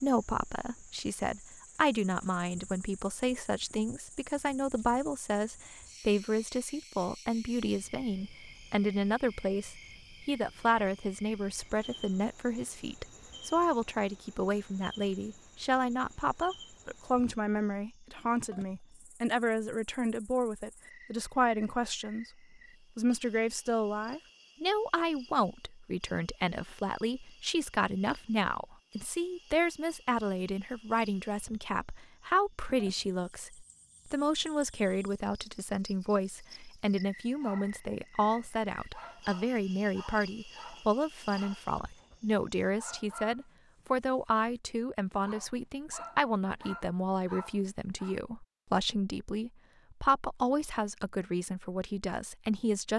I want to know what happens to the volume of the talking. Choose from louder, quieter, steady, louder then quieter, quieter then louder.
steady.